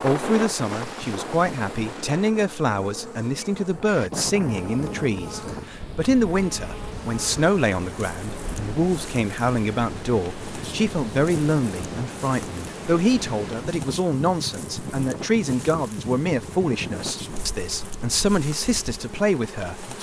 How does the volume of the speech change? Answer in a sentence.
The loudness of the speech stays about the same.